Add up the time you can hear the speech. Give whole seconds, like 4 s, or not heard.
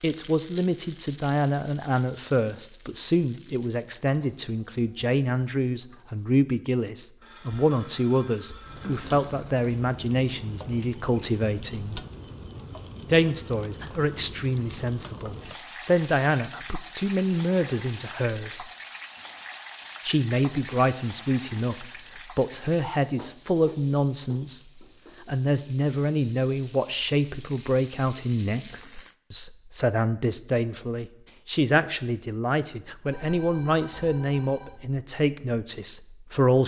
34 s.